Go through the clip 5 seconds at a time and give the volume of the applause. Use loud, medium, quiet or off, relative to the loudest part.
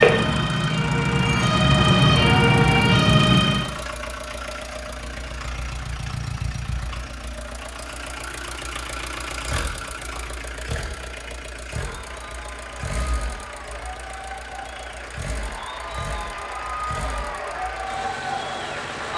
loud, off, medium, loud.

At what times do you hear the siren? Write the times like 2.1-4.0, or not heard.
0.0-3.6.